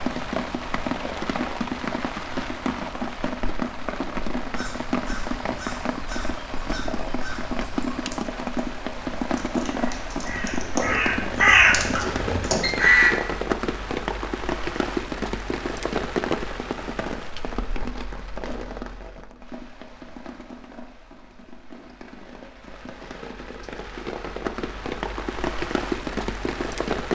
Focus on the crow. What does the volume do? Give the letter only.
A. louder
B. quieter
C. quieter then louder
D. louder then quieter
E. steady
A.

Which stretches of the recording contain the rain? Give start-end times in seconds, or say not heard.
0.0-27.1.